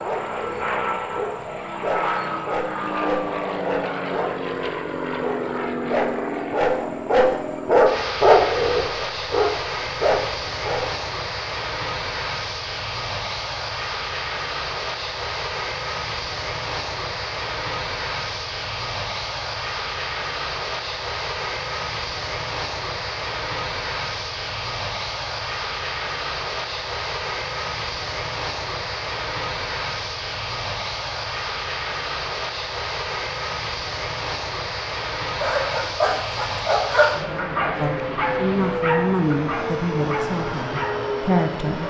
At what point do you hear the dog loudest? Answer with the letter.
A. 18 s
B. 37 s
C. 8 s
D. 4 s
C.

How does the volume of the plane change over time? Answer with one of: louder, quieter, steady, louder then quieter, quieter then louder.
steady.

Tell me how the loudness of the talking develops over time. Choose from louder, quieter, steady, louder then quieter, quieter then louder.
quieter then louder.